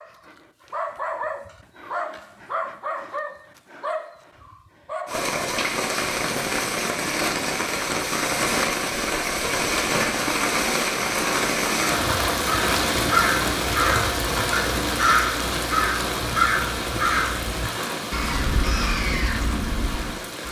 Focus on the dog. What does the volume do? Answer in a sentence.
The loudness of the dog goes down.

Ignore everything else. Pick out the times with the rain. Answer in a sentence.
You can hear the rain from 5.0 to 20.4 s.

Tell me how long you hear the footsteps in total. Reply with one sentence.
The footsteps can't be heard in this clip.